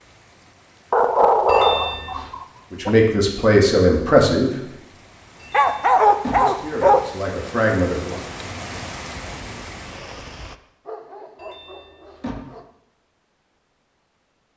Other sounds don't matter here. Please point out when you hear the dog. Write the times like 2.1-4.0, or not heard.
0.9-3.0, 5.5-7.0, 10.8-12.7.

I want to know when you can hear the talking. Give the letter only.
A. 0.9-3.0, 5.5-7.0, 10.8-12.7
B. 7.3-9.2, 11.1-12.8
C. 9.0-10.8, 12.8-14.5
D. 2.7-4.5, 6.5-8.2
D.